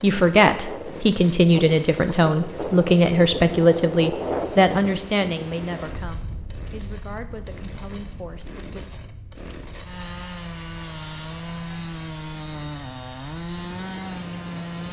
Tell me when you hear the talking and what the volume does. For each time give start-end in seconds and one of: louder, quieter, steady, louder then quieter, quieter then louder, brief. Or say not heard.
0.0-8.8 quieter.